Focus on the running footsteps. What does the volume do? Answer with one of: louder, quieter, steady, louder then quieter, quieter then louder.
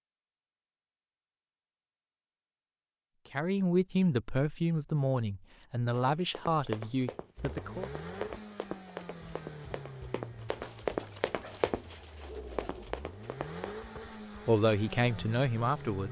louder then quieter.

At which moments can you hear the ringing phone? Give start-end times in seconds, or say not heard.
not heard.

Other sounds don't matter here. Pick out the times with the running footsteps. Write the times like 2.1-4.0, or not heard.
6.0-13.7.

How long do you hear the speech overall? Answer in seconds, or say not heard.
6 s.